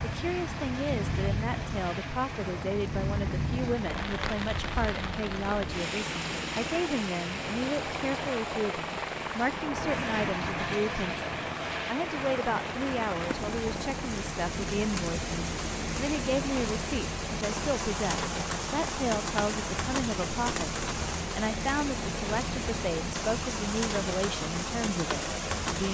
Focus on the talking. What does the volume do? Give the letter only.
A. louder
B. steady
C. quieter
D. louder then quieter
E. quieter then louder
B.